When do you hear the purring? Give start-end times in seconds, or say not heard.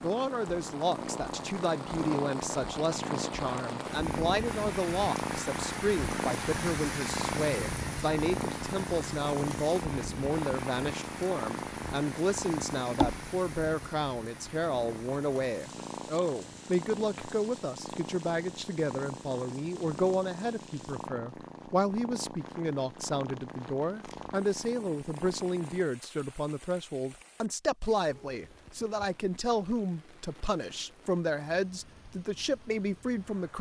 0.0-25.9.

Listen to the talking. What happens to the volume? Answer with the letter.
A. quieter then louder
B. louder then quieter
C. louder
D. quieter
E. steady
E.